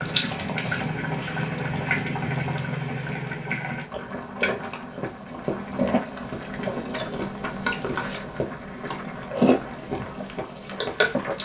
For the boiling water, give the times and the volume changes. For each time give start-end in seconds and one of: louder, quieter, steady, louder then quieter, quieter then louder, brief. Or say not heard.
0.0-11.4 quieter.